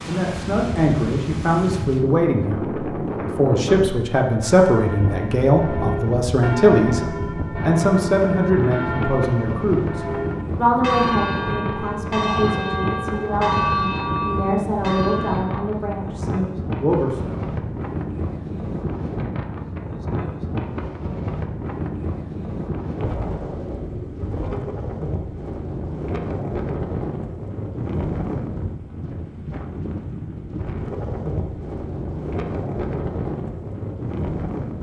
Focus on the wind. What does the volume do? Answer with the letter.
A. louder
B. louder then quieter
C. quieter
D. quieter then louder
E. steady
E.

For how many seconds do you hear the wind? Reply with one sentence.
You can hear the wind for 35 seconds altogether.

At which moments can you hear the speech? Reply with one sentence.
The speech can be heard from 0.1 to 17.6 s.